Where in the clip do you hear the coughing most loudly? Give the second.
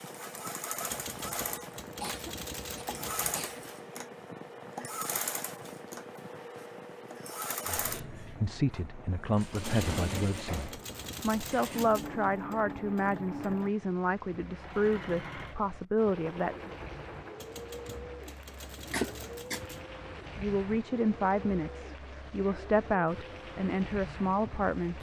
19 s.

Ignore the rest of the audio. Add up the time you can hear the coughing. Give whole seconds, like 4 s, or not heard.
2 s.